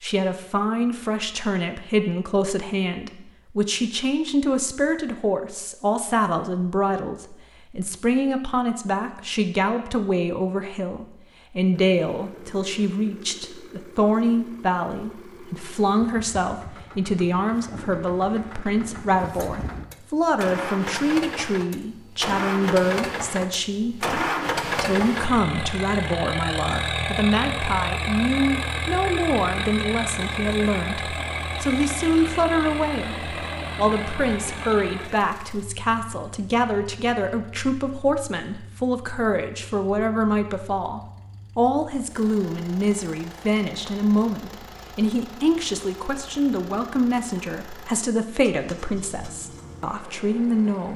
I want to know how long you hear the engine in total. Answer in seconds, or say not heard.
39 s.